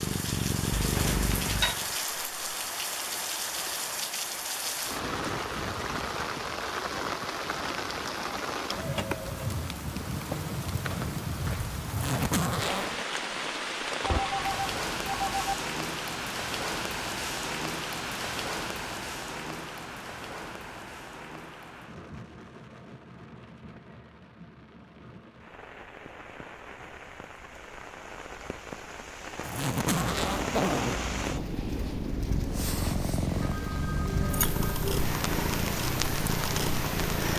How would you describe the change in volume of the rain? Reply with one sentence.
The loudness of the rain goes down, then up.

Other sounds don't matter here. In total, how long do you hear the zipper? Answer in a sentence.
The zipper can be heard for 3 seconds in total.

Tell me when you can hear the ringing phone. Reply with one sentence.
The ringing phone can be heard from 0.8 to 1.8 s, from 14.0 to 15.6 s and from 33.4 to 35.0 s.